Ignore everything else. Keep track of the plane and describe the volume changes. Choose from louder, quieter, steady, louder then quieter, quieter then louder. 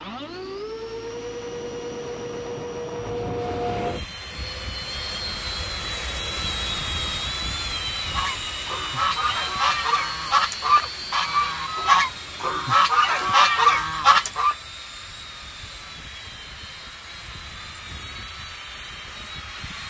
quieter.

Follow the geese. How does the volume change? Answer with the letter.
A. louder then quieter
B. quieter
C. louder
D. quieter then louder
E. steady
C.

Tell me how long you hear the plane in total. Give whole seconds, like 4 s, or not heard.
20 s.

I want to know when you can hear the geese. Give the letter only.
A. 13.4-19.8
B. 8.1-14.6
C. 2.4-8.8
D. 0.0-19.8
B.